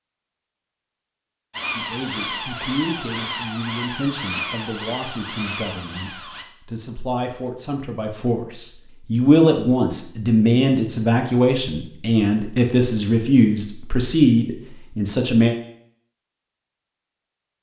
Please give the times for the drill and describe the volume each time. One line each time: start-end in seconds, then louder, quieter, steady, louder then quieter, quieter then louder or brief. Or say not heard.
1.5-6.5 steady.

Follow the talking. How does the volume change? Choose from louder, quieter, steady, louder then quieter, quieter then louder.
louder.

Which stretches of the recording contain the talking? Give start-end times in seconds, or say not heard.
1.7-15.6.